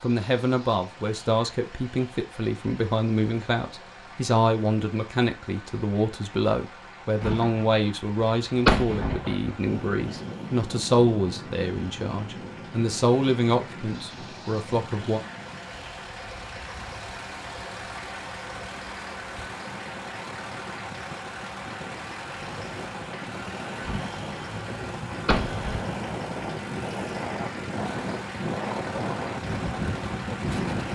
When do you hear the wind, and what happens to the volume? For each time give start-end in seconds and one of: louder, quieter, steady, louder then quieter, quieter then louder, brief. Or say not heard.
9.7-30.9 quieter then louder.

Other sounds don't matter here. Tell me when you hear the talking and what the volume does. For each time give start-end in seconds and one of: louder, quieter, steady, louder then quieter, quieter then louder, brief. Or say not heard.
0.0-15.2 steady.